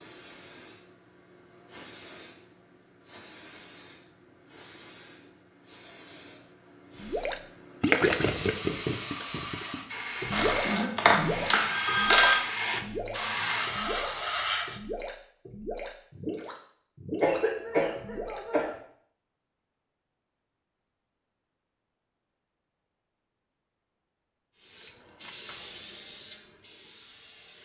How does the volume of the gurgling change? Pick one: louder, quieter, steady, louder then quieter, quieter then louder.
quieter.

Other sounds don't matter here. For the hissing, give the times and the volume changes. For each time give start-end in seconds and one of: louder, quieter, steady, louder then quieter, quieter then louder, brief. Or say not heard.
0.0-14.8 louder
24.6-27.5 brief.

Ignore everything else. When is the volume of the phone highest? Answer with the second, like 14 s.
12 s.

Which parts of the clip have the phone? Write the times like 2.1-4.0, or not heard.
10.3-12.4.